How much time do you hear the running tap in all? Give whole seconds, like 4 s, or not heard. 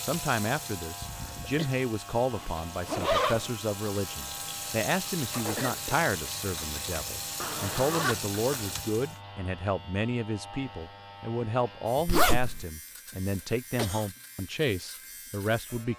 9 s.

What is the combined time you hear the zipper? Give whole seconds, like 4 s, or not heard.
3 s.